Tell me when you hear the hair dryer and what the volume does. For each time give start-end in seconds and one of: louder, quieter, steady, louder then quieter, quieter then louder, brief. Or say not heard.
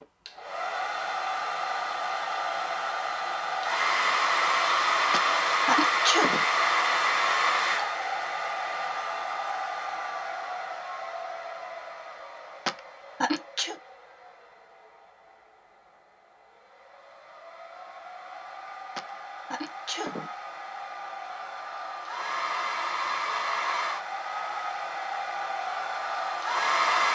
0.0-27.1 quieter then louder.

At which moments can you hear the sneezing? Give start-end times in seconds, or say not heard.
5.1-6.5, 12.7-13.8, 18.9-20.3.